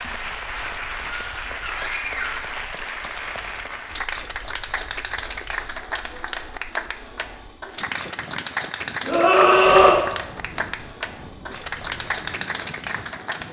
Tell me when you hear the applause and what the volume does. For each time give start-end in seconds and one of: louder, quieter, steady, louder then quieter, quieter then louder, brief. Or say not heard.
0.0-13.4 steady.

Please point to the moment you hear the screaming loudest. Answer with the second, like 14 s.
10 s.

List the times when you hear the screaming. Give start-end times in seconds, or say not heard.
1.1-2.4, 9.1-10.0.